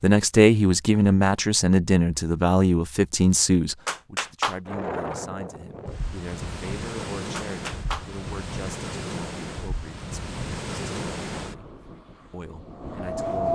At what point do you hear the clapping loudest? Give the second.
4 s.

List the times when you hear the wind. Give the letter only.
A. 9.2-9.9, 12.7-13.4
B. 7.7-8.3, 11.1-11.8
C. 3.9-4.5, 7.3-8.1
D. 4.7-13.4
D.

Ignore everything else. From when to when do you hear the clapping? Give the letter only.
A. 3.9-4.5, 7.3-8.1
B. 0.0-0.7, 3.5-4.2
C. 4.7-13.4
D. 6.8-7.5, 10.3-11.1
A.